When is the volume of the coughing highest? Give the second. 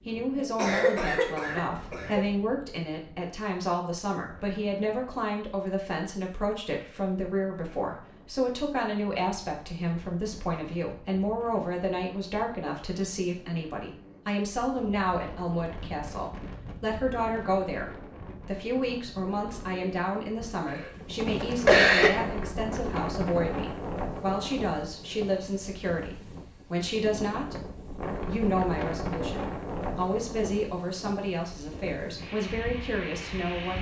22 s.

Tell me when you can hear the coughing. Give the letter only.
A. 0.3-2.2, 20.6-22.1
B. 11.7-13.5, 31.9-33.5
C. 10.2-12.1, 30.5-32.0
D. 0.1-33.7
A.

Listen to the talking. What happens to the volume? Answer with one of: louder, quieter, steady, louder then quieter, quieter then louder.
steady.